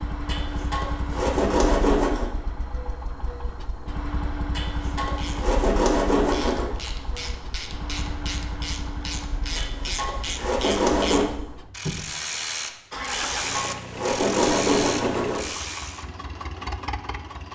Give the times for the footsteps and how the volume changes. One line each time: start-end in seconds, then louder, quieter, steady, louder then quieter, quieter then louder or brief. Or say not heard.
not heard.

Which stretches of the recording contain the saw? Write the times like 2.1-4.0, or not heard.
0.2-2.2, 4.5-6.7, 9.6-11.2, 13.1-15.4.